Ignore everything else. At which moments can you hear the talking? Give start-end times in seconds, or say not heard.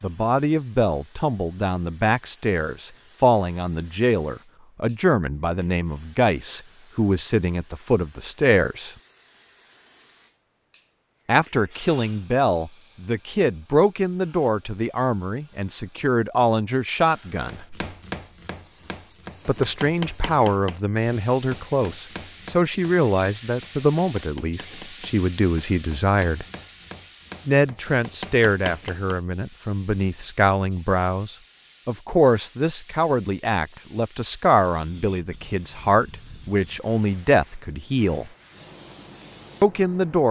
0.0-8.9, 11.2-17.6, 19.4-26.4, 27.4-38.3, 39.6-40.2.